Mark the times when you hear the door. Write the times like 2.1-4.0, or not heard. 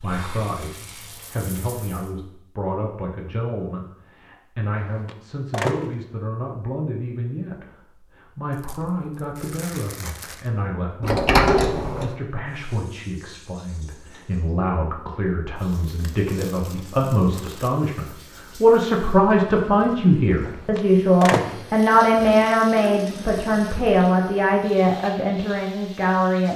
4.8-6.0, 11.0-12.2, 20.4-21.6.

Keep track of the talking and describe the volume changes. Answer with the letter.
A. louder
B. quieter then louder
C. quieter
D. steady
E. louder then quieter
A.